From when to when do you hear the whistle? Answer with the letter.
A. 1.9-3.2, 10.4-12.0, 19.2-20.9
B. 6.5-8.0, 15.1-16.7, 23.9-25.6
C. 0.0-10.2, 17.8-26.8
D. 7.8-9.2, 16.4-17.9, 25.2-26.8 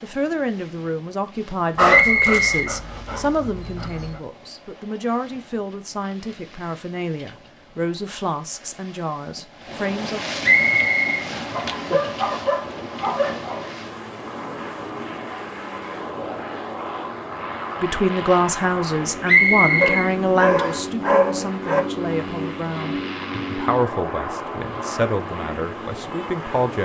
A.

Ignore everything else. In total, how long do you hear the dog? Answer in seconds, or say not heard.
7 s.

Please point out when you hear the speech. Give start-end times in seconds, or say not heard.
0.0-10.2, 17.8-26.8.